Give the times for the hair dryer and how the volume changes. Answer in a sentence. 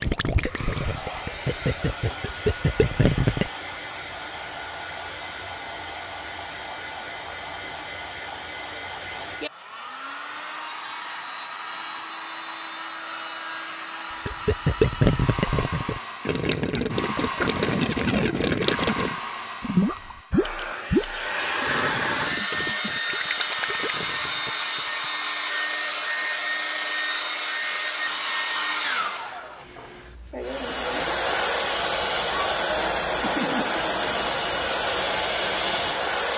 You can hear the hair dryer from 0.0 to 36.3 s, getting louder.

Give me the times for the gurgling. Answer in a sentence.
The gurgling can be heard from 0.0 to 3.5 s and from 14.2 to 25.1 s.